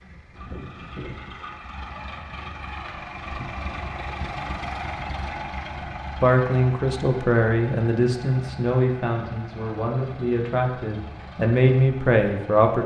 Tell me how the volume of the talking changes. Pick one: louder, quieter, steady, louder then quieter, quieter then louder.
quieter then louder.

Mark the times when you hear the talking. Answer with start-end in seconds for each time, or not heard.
6.2-12.8.